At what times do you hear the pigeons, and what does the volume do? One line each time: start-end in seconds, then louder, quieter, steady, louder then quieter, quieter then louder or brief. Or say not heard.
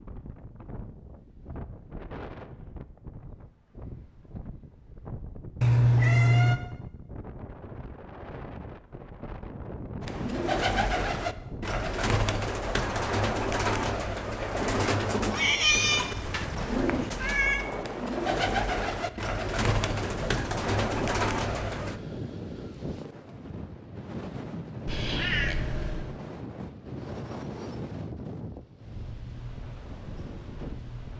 10.0-22.0 steady.